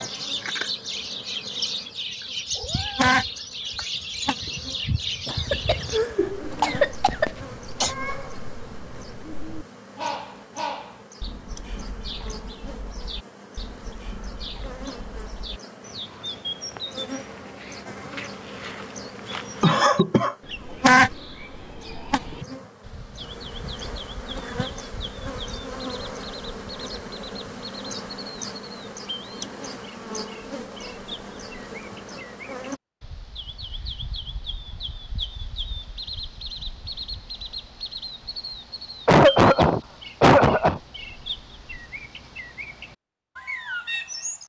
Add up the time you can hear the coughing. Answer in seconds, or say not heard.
5 s.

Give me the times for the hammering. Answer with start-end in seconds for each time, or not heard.
not heard.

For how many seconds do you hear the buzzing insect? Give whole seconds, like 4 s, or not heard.
33 s.